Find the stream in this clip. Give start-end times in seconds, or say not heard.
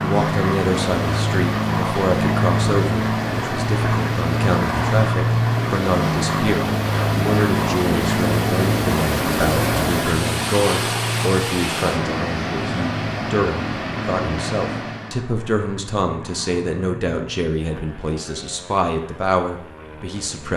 0.0-15.2.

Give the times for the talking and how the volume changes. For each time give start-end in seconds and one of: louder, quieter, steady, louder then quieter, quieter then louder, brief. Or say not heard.
0.0-20.5 steady.